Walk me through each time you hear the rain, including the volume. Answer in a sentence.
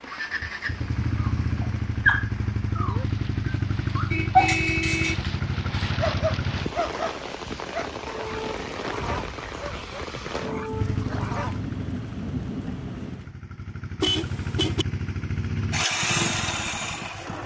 The rain can be heard from 0.0 to 13.3 s, getting louder.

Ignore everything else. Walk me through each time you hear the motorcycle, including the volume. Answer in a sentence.
The motorcycle can be heard from 0.0 to 6.7 s, at a steady volume; and from 10.7 to 17.4 s, getting quieter then louder.